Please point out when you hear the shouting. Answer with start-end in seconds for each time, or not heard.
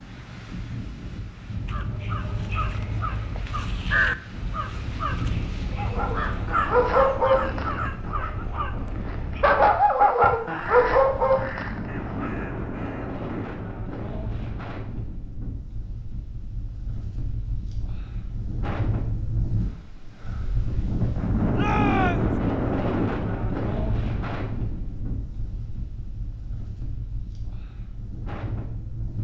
21.6-22.4.